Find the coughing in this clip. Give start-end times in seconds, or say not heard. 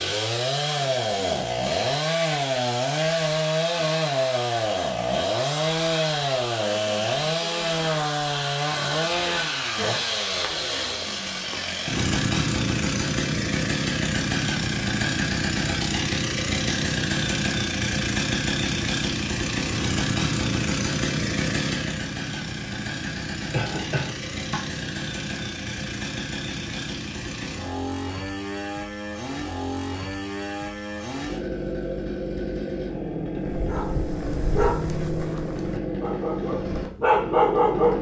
23.5-24.6.